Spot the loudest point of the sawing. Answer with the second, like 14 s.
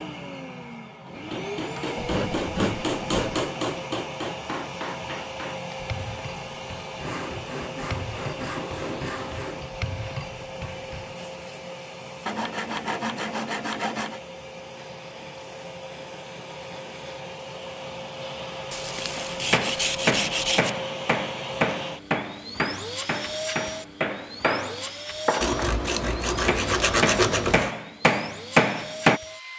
27 s.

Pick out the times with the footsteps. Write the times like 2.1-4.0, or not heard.
not heard.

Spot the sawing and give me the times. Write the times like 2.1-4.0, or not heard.
1.9-3.5, 7.0-9.7, 12.2-14.2, 18.7-20.7, 25.4-27.7.